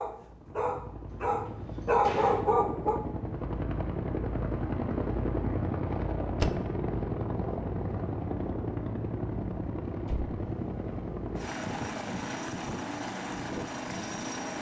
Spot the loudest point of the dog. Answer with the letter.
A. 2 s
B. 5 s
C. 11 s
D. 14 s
A.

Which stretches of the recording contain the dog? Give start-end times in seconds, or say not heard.
0.0-3.0.